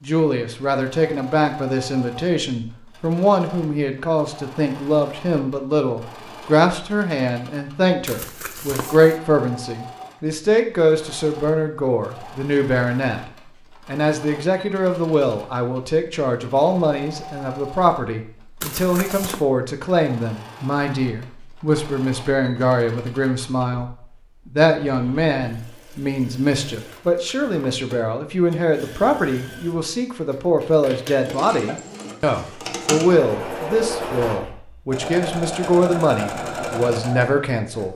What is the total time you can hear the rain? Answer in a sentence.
You can't hear the rain here.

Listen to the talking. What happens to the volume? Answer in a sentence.
The loudness of the talking stays about the same.